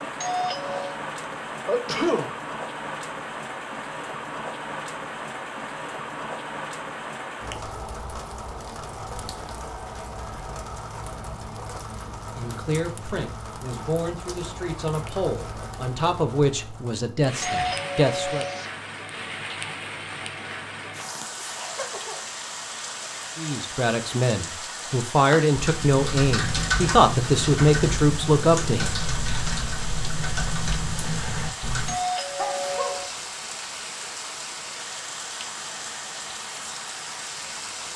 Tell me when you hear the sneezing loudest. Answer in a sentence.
The loudest moment of the sneezing is at 2 seconds.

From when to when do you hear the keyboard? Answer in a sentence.
The keyboard can be heard from 25.3 to 31.9 s.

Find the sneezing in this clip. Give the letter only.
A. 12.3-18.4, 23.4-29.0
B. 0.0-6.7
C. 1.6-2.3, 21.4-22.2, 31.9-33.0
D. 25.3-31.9
C.